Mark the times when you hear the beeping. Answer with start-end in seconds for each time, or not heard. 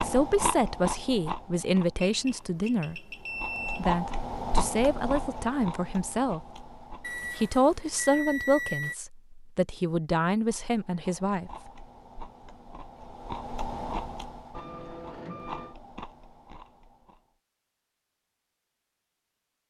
1.9-3.9, 7.0-8.9, 14.5-15.8.